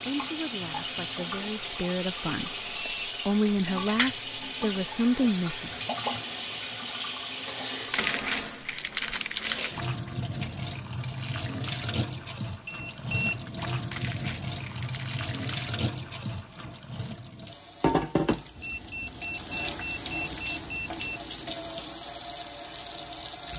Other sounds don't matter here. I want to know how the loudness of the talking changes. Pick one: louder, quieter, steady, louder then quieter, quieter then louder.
louder.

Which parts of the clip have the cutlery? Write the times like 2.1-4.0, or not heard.
not heard.